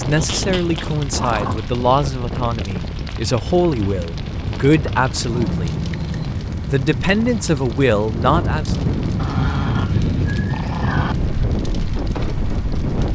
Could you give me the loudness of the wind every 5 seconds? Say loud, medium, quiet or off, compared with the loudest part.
medium, loud, loud.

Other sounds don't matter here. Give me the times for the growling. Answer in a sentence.
The growling can be heard from 0.1 to 1.6 s, from 5.2 to 6.4 s and from 9.2 to 11.2 s.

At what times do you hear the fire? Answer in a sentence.
The fire can be heard from 0.0 to 13.1 s.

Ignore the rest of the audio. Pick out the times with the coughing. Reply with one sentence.
The coughing can't be heard in this clip.